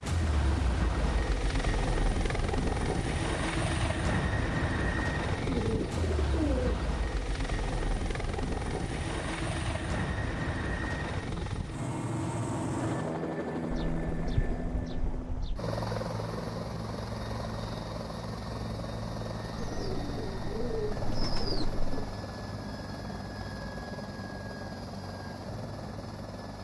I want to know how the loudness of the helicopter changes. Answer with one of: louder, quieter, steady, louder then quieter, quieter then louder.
quieter.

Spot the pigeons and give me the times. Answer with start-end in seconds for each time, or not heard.
5.3-7.0, 13.7-15.6, 19.6-22.1.